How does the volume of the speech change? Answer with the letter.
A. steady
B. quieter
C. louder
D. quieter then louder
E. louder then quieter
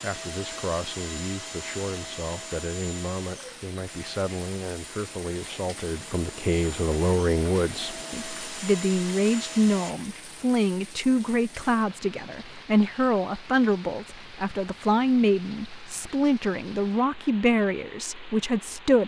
C.